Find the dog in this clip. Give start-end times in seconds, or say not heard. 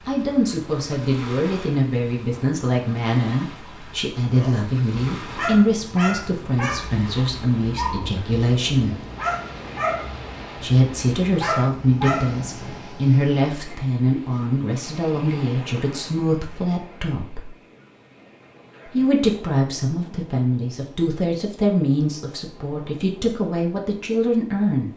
4.3-12.8.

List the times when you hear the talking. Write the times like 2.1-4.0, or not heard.
0.1-9.0, 10.6-17.4, 18.9-24.9.